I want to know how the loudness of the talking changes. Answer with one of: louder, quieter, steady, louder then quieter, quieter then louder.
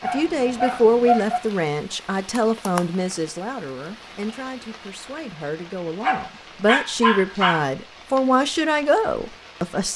quieter then louder.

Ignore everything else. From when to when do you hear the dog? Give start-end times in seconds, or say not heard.
0.0-1.4, 6.0-7.7.